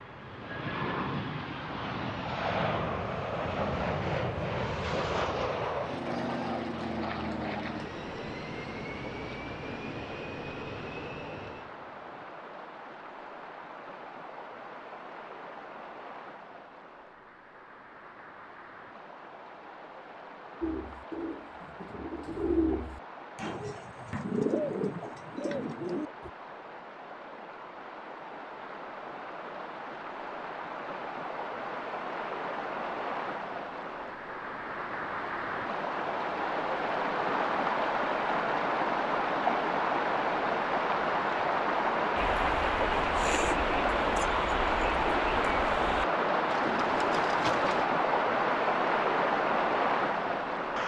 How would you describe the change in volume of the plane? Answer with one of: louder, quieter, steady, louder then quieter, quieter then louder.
quieter.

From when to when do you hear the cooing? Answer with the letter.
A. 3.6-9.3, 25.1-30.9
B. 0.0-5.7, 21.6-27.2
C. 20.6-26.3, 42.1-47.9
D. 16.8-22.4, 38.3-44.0
C.